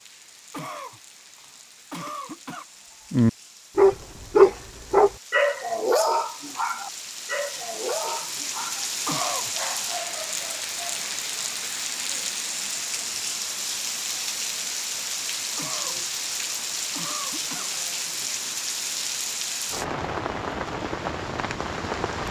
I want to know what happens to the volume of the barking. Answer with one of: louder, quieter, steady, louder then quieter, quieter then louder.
quieter.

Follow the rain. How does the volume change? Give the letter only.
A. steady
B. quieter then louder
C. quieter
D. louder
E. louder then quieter
D.